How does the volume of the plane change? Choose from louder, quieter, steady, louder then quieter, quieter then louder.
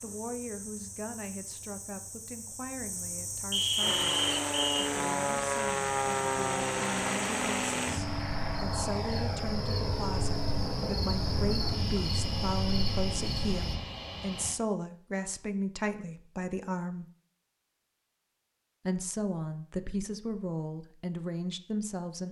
quieter.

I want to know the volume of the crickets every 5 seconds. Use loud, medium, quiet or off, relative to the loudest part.
medium, medium, loud, off, off.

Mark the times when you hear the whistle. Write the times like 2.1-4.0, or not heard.
3.5-4.8.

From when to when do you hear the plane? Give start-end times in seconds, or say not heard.
3.8-14.6.